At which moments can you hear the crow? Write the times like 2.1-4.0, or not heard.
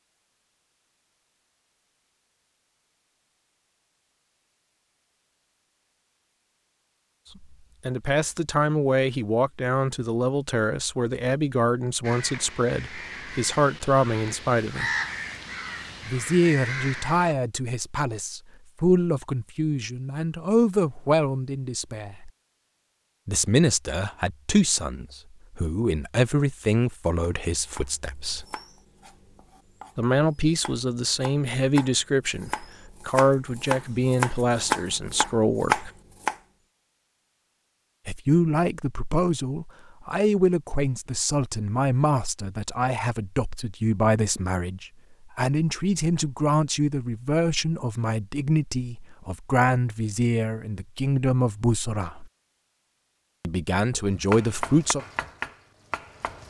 12.0-17.4.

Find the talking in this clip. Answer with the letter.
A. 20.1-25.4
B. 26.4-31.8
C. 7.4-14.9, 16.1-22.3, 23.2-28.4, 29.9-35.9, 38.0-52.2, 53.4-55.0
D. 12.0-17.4
C.